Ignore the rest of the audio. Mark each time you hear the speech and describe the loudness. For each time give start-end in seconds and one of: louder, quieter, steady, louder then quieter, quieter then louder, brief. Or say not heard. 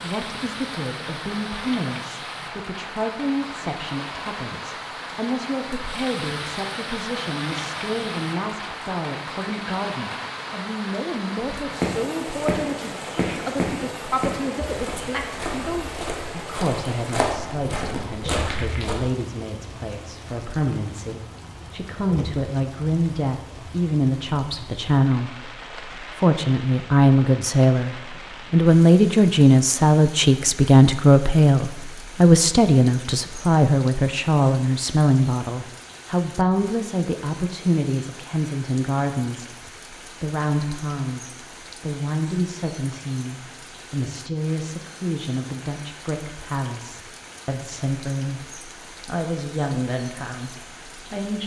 0.0-51.4 louder then quieter.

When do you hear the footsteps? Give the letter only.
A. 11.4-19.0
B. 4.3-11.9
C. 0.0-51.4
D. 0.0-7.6
A.